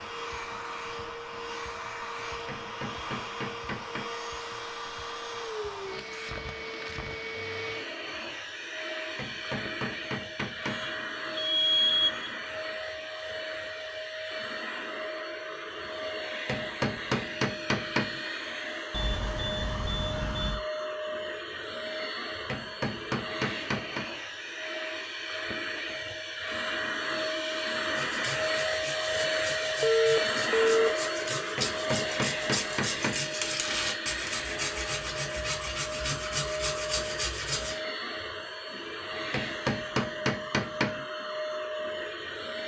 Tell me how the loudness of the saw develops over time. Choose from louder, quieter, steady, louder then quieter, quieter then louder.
louder.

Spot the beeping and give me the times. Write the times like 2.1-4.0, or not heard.
10.7-12.3, 18.9-20.6, 29.8-31.0.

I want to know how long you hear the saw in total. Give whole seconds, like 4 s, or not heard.
10 s.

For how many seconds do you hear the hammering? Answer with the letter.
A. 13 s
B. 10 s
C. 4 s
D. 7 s
B.